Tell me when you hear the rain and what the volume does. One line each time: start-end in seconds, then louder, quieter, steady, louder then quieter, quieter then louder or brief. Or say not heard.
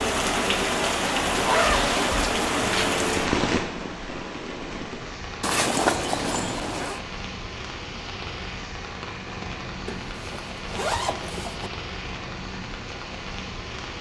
0.0-13.9 quieter.